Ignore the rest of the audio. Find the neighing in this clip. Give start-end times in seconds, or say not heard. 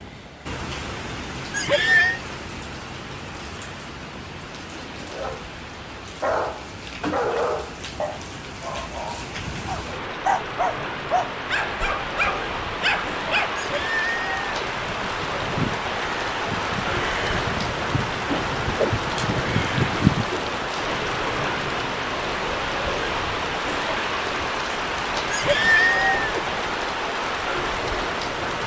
1.5-2.2, 13.6-14.5, 25.3-26.5.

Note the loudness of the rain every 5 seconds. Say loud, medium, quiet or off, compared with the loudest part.
medium, medium, loud, loud, loud, loud.